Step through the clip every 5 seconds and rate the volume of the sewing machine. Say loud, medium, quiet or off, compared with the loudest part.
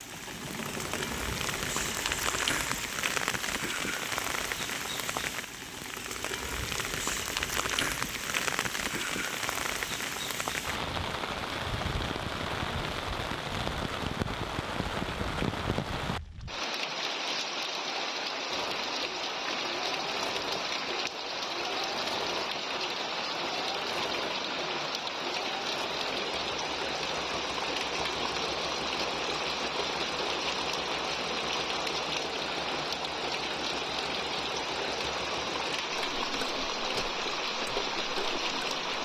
loud, off, off, loud, loud, loud, loud, loud.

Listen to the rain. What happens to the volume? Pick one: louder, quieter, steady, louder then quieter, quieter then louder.
steady.